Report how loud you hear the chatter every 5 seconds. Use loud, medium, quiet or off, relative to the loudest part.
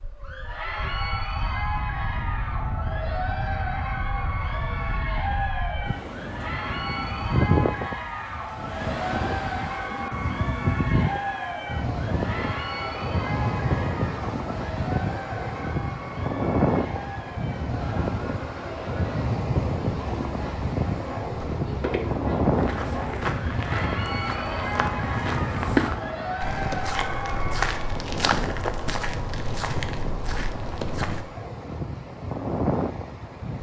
loud, loud, loud, medium, loud, loud, off.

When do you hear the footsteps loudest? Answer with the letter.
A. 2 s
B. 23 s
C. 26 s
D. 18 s
C.